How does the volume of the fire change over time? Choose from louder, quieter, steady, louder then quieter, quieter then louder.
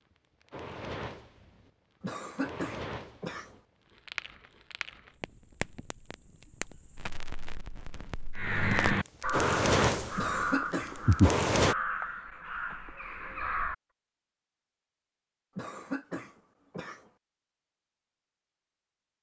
louder.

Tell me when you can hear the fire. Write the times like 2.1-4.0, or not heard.
0.2-11.8.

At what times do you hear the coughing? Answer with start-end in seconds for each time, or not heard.
2.0-3.5, 10.2-11.0, 15.6-17.1.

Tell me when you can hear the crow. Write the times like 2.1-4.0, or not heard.
8.3-13.8.